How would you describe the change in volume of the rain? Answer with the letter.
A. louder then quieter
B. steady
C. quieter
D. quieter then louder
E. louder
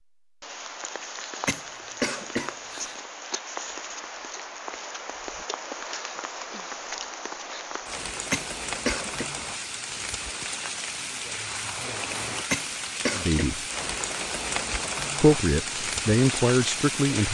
E.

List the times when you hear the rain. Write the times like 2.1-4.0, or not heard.
0.2-17.2.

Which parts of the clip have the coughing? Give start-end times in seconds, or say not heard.
1.4-2.9, 8.3-9.3, 12.5-13.4.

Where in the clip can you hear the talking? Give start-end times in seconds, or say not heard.
13.1-13.7, 15.2-17.2.